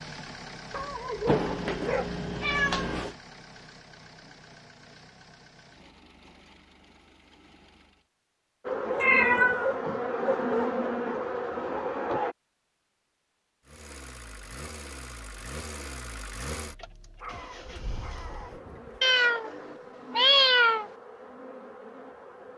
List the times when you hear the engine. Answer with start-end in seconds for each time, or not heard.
0.0-8.1, 13.7-19.2.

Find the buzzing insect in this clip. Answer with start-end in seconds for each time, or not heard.
8.7-12.3, 17.1-22.5.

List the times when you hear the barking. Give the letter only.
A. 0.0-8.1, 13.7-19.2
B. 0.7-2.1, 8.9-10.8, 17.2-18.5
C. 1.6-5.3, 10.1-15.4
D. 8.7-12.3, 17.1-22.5
B.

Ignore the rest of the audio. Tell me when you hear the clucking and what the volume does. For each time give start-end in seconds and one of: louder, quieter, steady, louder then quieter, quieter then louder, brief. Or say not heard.
not heard.